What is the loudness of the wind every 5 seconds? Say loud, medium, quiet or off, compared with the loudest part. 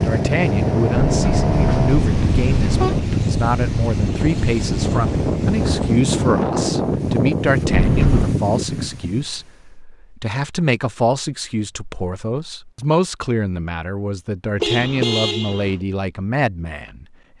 loud, loud, off, off.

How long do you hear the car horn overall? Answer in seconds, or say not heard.
4 s.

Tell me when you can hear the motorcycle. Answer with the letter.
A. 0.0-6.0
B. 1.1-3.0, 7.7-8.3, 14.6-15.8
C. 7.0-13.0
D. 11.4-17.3
A.